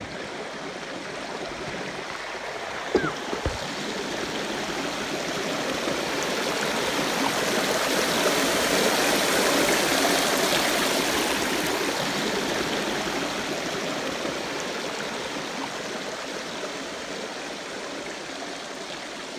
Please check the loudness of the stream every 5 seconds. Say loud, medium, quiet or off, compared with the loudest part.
medium, loud, loud, medium.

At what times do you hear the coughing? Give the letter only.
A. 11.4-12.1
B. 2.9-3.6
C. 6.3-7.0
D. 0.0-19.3
B.